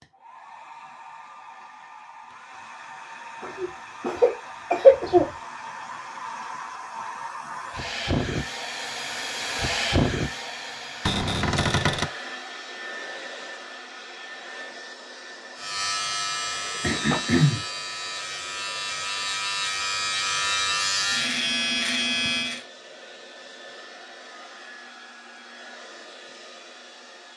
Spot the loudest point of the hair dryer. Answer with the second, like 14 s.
10 s.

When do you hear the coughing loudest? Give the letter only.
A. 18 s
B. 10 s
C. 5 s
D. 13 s
C.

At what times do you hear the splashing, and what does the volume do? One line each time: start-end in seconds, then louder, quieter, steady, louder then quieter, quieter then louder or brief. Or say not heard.
not heard.